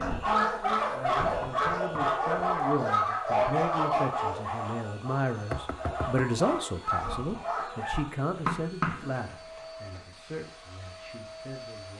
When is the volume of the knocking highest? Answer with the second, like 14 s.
9 s.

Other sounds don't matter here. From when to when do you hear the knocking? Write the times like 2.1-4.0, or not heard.
1.2-2.2, 5.5-6.2, 8.3-9.1.